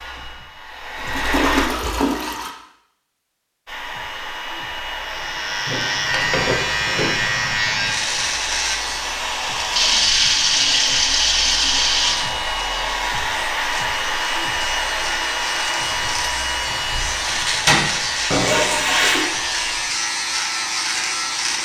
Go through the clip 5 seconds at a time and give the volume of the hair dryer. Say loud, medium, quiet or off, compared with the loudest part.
loud, loud, loud, loud, medium.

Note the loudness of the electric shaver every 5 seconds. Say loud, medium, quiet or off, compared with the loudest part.
off, loud, medium, loud, loud.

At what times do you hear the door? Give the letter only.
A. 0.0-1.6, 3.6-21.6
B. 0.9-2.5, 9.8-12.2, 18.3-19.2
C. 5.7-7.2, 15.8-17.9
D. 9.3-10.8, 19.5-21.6
C.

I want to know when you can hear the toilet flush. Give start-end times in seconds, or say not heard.
0.9-2.5, 9.8-12.2, 18.3-19.2.